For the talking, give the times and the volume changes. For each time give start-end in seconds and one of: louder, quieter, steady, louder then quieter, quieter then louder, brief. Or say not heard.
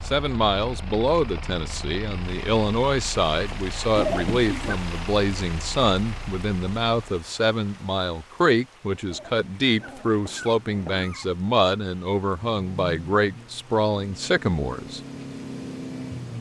0.1-15.0 steady.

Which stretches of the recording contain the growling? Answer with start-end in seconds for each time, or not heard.
4.0-4.8, 9.1-11.4.